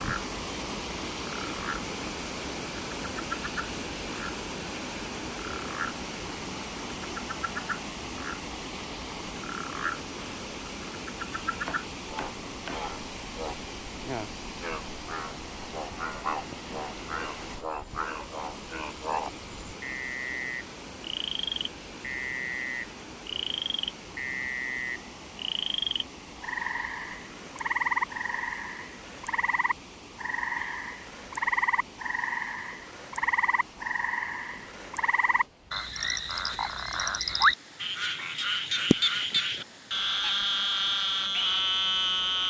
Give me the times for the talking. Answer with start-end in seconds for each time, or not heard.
not heard.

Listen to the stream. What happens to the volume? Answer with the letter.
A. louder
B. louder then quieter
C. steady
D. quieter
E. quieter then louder
D.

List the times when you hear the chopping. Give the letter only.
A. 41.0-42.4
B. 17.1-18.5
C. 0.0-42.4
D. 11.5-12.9
D.